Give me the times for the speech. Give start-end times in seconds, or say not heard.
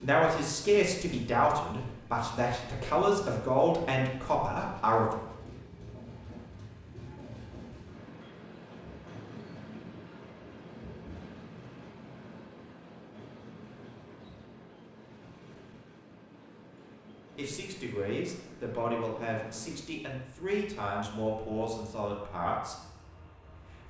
0.0-5.2, 17.4-22.8.